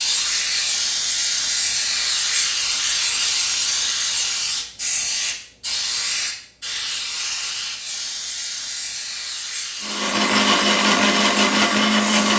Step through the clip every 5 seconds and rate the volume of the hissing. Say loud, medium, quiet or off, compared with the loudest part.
loud, medium, medium.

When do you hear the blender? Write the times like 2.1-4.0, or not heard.
9.8-12.3.